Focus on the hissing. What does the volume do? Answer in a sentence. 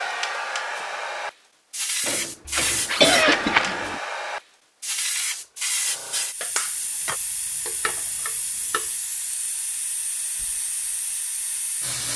The loudness of the hissing goes down.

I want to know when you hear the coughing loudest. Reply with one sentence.
The loudest moment of the coughing is at 3 seconds.